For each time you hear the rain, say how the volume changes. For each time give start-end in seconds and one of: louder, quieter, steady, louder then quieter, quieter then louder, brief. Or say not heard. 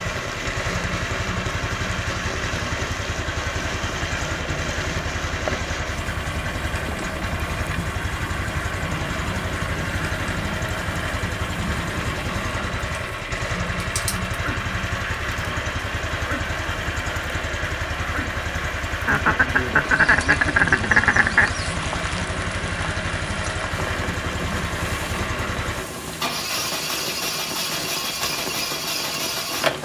0.0-29.7 steady.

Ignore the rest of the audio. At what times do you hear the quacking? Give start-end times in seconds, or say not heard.
3.6-5.6, 19.1-21.6.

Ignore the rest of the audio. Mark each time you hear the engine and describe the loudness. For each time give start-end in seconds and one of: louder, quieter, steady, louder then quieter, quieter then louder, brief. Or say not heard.
0.0-29.7 steady.